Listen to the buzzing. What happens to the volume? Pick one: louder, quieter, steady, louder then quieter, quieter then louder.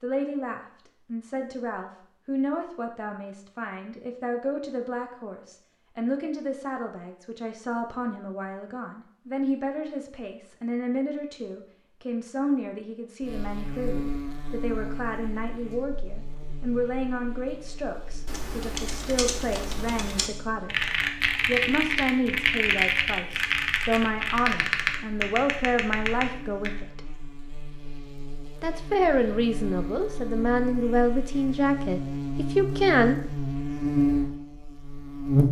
quieter then louder.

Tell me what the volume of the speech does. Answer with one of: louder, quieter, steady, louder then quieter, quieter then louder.
louder.